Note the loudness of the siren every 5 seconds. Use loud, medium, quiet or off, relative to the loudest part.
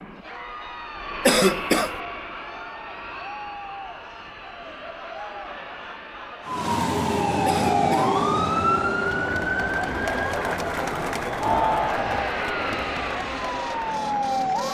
off, loud, medium.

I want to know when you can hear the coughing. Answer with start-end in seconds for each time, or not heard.
1.2-1.9, 7.5-8.2.